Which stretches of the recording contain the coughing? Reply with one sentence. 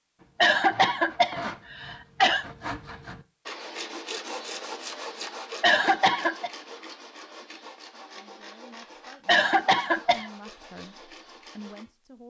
You can hear the coughing from 0.4 to 2.5 s, from 5.6 to 6.5 s and from 9.2 to 10.3 s.